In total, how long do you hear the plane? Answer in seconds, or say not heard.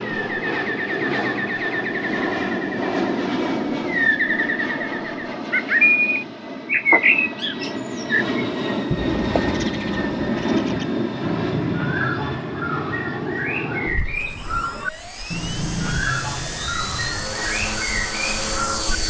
19 s.